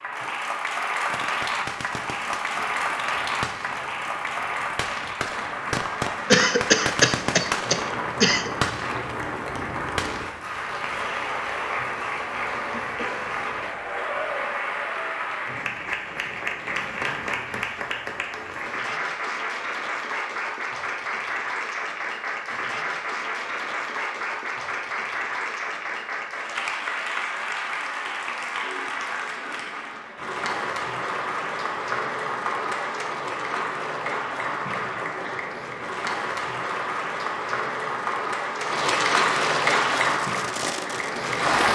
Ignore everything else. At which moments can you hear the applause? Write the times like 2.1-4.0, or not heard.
0.0-41.7.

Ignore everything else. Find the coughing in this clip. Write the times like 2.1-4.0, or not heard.
6.3-8.5.